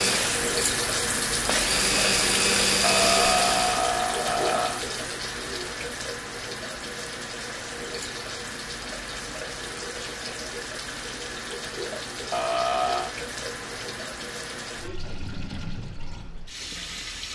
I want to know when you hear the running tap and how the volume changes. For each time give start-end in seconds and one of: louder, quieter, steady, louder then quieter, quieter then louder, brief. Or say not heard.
0.0-17.3 quieter.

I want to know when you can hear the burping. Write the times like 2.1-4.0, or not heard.
2.8-4.8, 12.3-13.2.